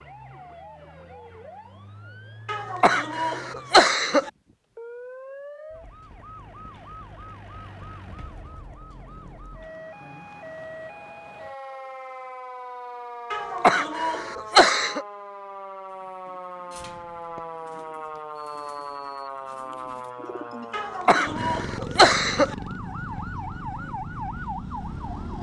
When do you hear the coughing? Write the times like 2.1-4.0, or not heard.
2.5-4.3, 13.3-15.1, 20.7-22.6.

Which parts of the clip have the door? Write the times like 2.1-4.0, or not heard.
not heard.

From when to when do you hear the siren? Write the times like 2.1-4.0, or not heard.
0.0-25.3.